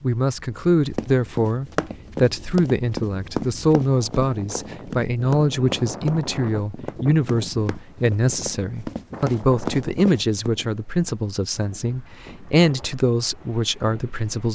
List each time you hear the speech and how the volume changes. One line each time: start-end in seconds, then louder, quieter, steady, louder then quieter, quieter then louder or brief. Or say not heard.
0.0-14.5 steady.